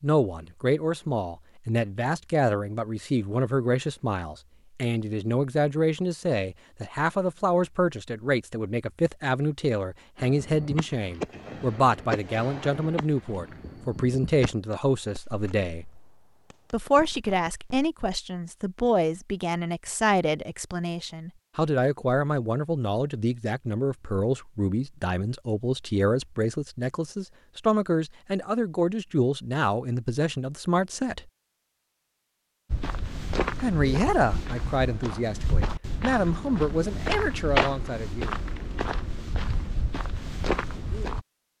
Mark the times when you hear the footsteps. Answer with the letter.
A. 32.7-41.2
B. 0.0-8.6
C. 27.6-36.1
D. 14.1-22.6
A.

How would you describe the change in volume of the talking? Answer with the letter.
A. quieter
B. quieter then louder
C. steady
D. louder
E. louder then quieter
C.